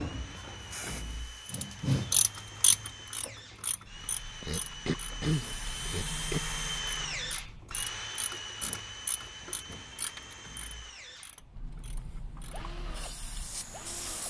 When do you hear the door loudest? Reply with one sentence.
The loudest moment of the door is at 1 second.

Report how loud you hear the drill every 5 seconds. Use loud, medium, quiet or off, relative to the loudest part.
medium, loud, medium.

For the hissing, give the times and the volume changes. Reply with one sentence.
You can hear the hissing briefly from 0.0 to 1.6 s; from 3.9 to 8.1 s, getting louder then quieter; and briefly from 11.4 to 14.2 s.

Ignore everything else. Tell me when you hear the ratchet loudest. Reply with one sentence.
The volume of the ratchet peaks at 2 seconds.